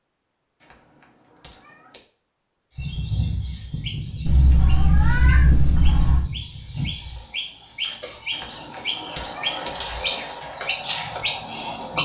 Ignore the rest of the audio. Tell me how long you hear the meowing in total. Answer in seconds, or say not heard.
3 s.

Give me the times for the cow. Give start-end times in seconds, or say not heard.
not heard.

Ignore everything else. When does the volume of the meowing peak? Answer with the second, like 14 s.
5 s.